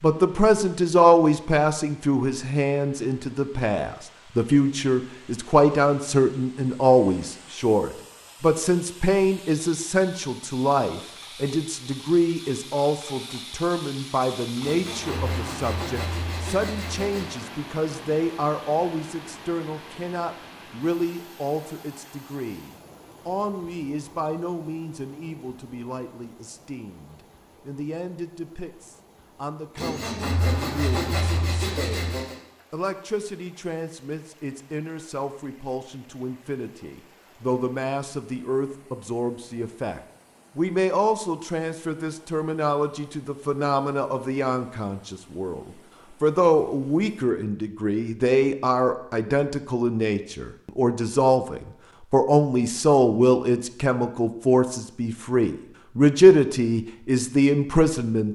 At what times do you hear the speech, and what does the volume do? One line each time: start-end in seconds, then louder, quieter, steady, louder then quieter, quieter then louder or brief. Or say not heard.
0.0-58.3 quieter then louder.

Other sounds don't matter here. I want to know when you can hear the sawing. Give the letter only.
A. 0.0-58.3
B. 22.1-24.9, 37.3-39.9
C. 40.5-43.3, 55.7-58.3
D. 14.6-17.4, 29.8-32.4
D.